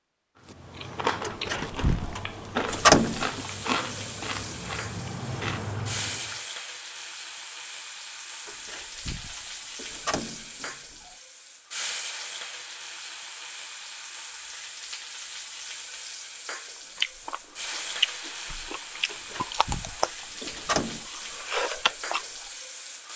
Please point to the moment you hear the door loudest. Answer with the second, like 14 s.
3 s.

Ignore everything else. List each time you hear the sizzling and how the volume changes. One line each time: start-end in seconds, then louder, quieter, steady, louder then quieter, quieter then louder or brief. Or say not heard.
2.6-23.1 steady.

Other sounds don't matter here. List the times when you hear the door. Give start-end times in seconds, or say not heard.
1.2-3.5, 8.4-11.2, 19.1-21.1.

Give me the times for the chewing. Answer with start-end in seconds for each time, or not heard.
0.5-6.4, 16.9-22.5.